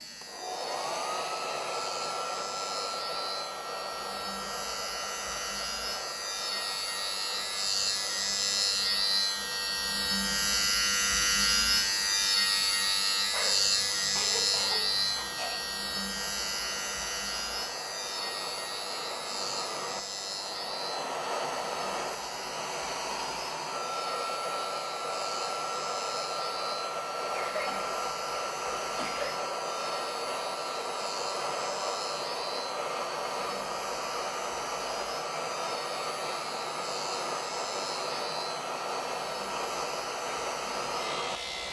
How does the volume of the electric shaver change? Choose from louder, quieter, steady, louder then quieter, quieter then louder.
louder then quieter.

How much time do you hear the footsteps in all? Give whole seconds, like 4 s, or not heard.
not heard.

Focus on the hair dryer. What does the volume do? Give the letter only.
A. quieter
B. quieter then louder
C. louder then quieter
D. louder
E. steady
B.